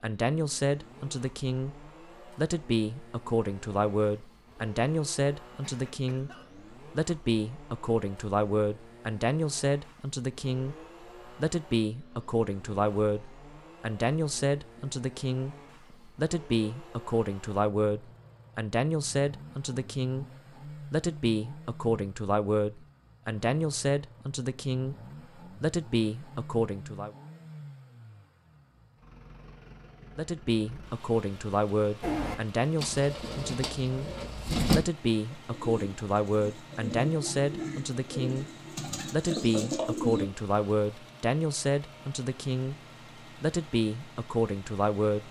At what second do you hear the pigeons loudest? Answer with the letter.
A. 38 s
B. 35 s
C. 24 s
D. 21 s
B.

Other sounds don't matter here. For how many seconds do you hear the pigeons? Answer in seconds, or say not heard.
8 s.